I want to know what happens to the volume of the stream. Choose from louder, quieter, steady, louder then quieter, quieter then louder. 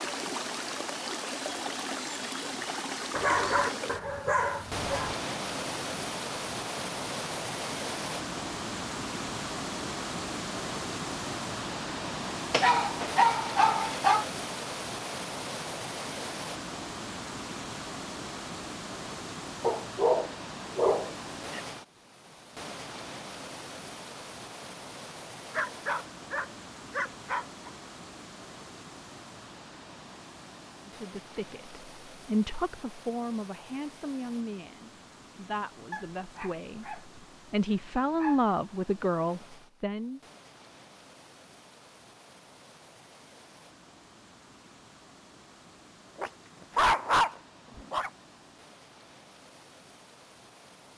quieter.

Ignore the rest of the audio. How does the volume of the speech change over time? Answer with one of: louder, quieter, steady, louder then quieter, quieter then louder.
quieter then louder.